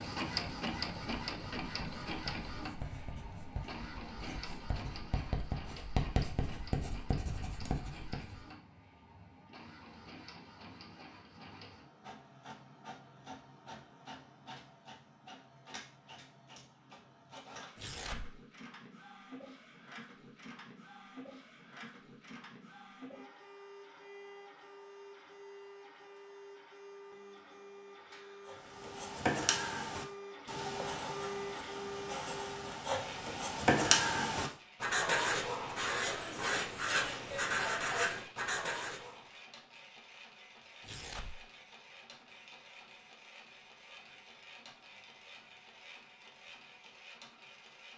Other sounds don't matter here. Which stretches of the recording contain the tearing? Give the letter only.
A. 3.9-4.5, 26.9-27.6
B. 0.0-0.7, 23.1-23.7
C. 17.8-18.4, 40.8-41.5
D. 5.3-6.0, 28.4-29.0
C.